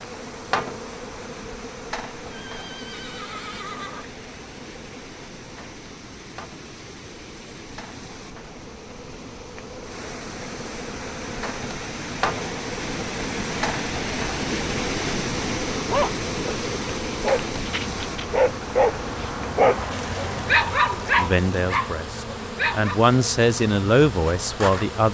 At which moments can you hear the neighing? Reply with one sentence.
The neighing can be heard from 2.3 to 4.2 s.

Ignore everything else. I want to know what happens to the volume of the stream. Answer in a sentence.
The volume of the stream goes up, then down.